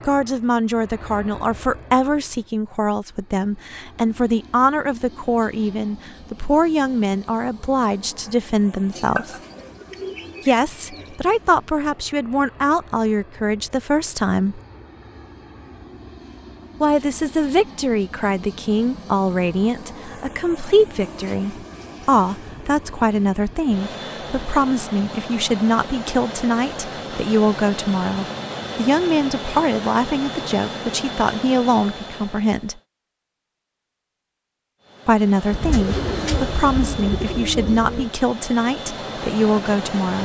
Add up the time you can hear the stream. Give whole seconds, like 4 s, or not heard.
not heard.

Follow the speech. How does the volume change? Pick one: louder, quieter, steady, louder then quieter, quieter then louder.
steady.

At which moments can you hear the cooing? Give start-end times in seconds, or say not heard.
8.9-11.2, 35.5-38.1.